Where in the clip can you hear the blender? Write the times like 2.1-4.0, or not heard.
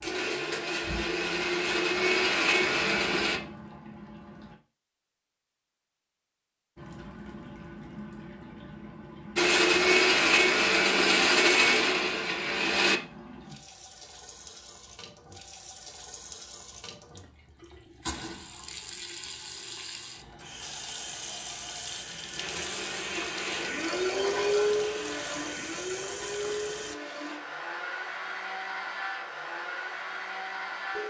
0.0-3.4, 9.3-13.0, 22.4-31.0.